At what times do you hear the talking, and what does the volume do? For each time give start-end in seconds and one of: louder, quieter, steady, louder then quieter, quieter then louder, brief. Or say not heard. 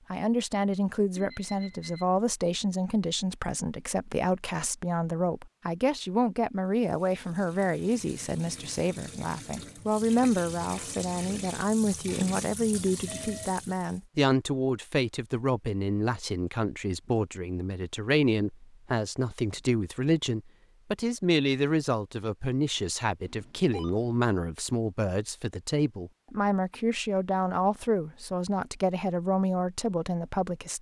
0.1-30.7 steady.